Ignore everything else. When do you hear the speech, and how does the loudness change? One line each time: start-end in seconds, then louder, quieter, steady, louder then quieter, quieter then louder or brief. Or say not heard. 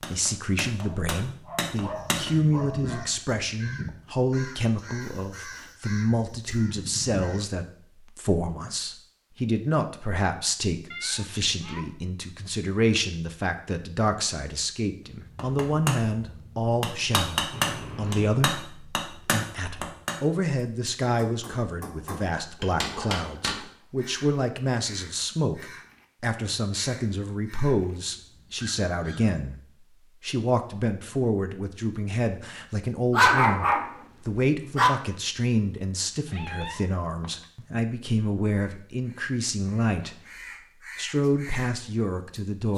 0.0-29.6 steady
30.2-42.7 steady.